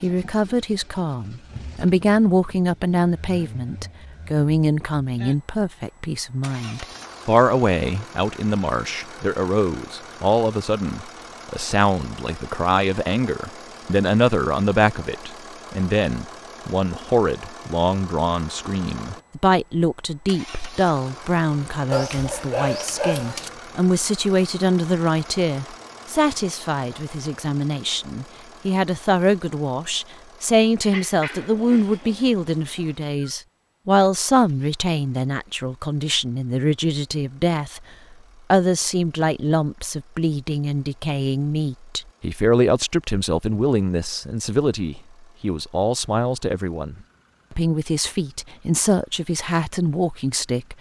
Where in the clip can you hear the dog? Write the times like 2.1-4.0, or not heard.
21.9-23.5, 30.8-33.3.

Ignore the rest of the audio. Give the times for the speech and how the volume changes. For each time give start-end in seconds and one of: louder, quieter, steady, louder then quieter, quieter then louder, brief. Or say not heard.
0.0-37.8 steady
38.5-50.7 steady.